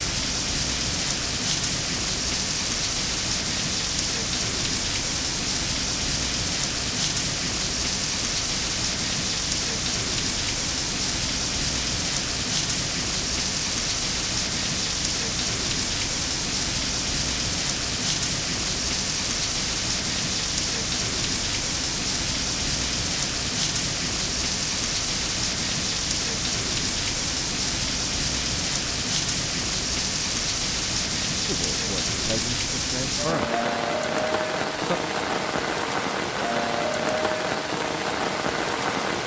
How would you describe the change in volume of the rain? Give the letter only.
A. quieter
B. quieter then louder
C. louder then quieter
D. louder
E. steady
E.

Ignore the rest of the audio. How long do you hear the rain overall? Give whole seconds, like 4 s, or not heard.
39 s.